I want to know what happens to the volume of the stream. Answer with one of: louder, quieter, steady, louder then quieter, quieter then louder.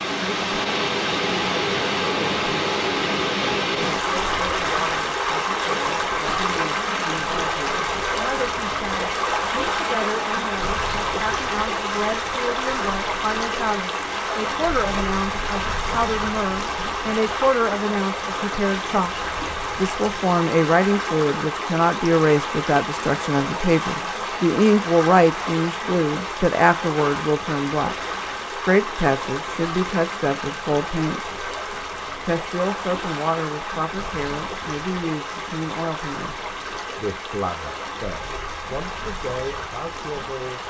quieter.